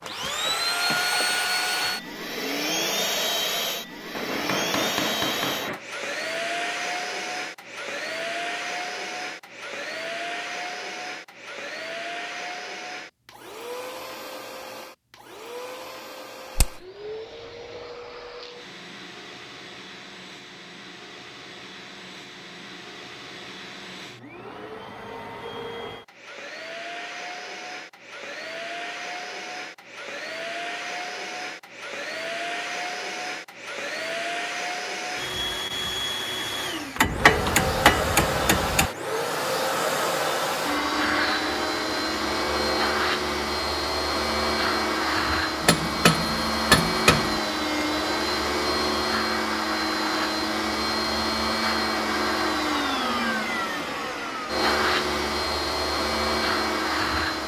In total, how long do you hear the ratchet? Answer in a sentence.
The ratchet can't be heard in this clip.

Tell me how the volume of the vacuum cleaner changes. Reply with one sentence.
The loudness of the vacuum cleaner goes down, then up.